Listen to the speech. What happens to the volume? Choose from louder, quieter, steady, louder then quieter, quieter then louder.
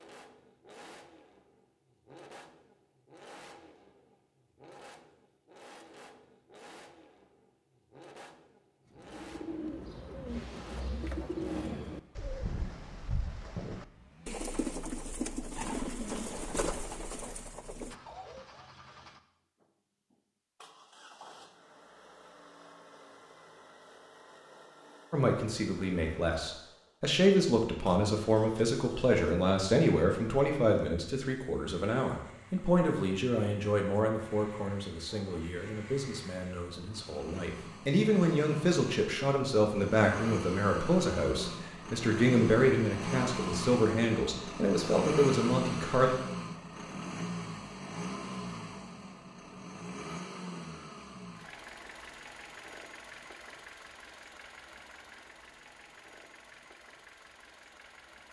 quieter then louder.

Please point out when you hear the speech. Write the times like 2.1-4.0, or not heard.
25.1-46.1.